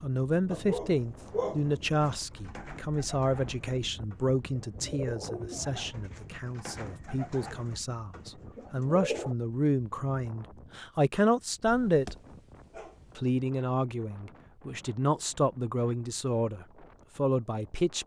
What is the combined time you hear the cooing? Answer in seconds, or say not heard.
7 s.